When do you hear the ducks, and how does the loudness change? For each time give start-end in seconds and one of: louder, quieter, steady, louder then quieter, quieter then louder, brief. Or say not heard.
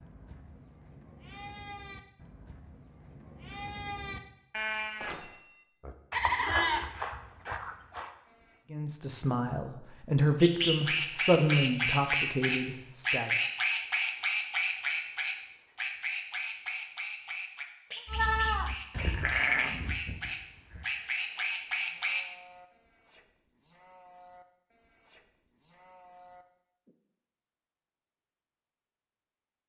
10.4-22.2 quieter then louder.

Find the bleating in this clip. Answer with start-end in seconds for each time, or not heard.
0.0-8.7, 18.1-26.9.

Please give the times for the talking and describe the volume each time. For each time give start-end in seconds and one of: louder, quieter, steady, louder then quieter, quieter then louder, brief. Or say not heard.
8.7-13.3 louder then quieter.